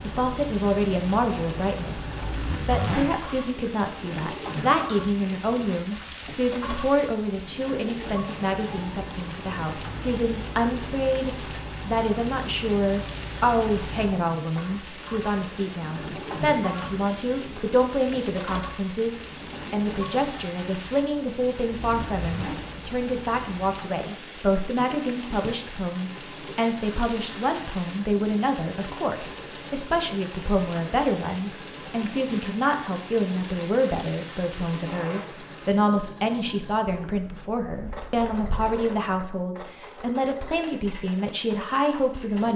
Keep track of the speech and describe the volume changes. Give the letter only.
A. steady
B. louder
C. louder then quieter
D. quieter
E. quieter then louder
A.